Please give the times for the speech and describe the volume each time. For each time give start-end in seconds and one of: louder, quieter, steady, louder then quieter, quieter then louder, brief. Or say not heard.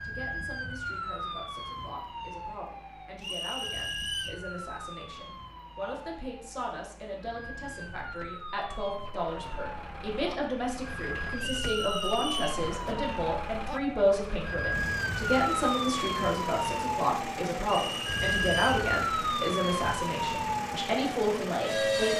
0.0-22.1 louder.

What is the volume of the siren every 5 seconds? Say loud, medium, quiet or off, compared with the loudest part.
medium, quiet, medium, loud, loud.